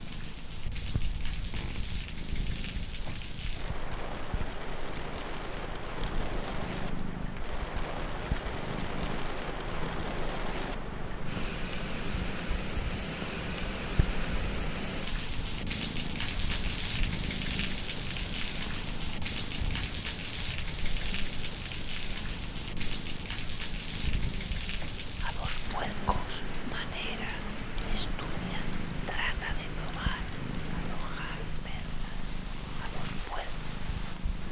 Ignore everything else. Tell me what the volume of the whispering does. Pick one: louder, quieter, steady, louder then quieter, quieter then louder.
quieter.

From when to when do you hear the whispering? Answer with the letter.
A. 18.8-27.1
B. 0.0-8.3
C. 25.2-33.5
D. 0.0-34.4
C.